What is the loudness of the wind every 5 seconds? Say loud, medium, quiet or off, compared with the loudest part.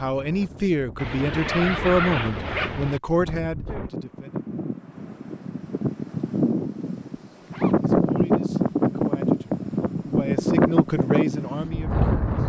quiet, loud, loud.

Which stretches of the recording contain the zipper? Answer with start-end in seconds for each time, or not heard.
0.9-3.0, 7.4-7.9.